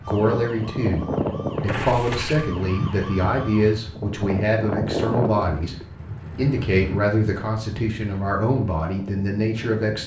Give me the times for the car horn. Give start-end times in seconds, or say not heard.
1.6-2.5, 5.2-5.8.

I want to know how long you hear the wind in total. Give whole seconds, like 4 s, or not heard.
10 s.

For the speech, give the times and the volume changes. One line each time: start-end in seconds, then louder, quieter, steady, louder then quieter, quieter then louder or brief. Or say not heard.
0.1-10.0 steady.